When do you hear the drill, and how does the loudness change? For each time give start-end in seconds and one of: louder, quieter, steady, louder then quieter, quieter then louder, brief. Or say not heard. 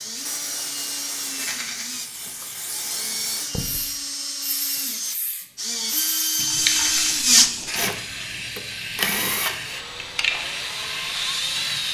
0.0-11.8 louder then quieter.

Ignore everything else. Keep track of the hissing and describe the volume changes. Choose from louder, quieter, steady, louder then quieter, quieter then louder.
louder.